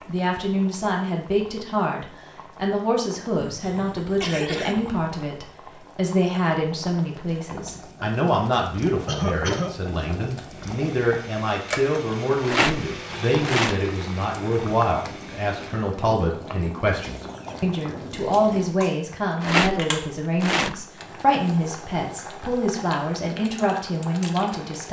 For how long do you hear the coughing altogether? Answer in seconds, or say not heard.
4 s.